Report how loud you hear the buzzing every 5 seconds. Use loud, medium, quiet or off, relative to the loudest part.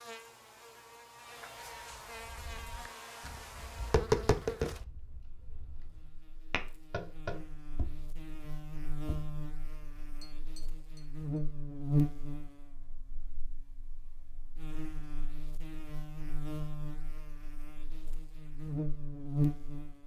medium, medium, loud, loud.